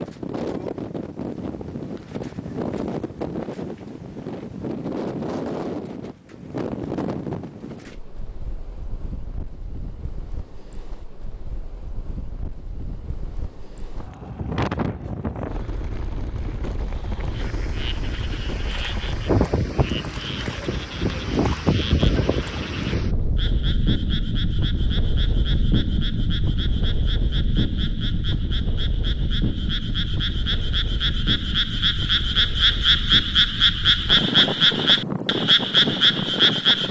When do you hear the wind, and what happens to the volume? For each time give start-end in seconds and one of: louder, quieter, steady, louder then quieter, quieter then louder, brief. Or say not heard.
0.0-36.8 quieter then louder.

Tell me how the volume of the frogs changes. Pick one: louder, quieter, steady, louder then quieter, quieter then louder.
louder.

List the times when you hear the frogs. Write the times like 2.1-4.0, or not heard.
17.3-36.8.